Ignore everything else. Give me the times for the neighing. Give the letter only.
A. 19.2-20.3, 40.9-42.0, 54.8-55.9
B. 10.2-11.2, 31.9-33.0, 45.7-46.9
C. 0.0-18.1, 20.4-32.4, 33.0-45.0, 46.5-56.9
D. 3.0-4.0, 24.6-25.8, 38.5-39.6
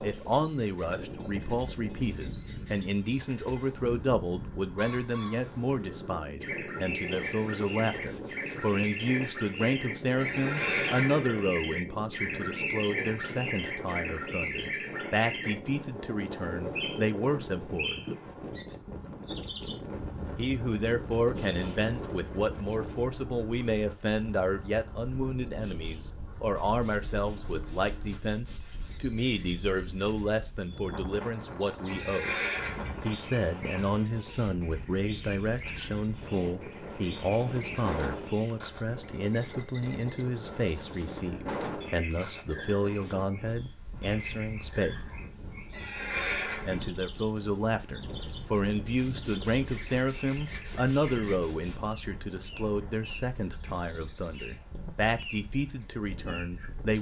B.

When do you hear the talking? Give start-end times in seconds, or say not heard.
0.0-18.1, 20.4-32.4, 33.0-45.0, 46.5-56.9.